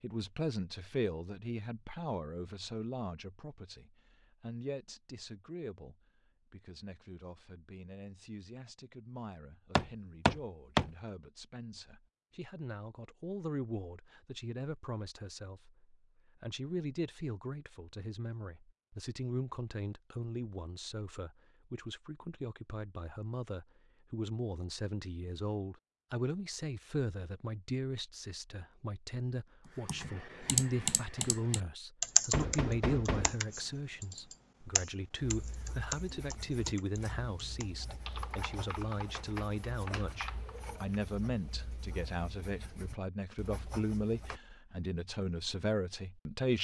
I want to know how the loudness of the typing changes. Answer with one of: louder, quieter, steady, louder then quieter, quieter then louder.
quieter.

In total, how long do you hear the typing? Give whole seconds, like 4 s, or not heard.
11 s.